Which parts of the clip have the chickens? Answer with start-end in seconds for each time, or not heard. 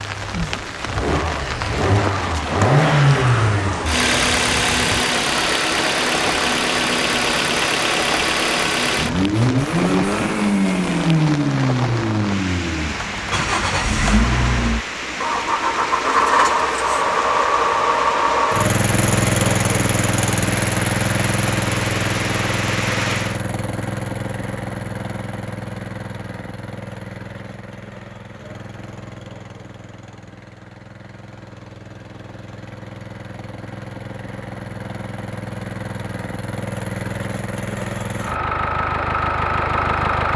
not heard.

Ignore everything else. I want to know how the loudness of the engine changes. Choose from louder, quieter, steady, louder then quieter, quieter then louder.
quieter then louder.